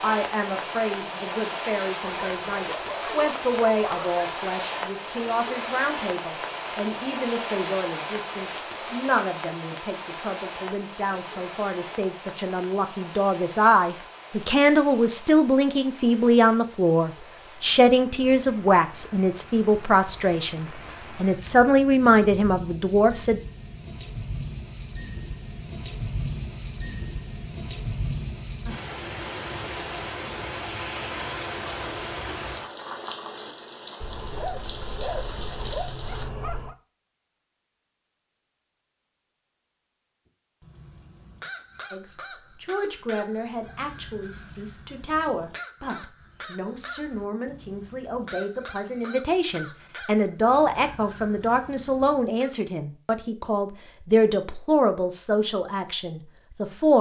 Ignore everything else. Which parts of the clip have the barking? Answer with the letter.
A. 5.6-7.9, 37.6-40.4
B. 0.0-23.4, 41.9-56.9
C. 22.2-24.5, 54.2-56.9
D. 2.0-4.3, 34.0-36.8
D.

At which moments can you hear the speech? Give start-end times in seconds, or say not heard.
0.0-23.4, 41.9-56.9.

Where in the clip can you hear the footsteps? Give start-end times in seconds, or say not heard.
not heard.